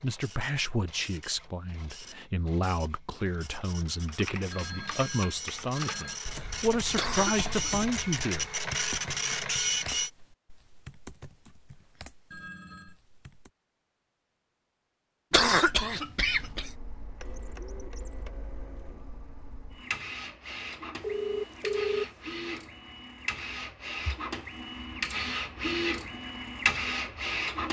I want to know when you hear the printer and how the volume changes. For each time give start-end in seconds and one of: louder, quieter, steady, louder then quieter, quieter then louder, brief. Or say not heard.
0.0-10.1 louder
16.2-27.6 louder.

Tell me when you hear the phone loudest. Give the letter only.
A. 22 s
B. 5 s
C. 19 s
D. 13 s
A.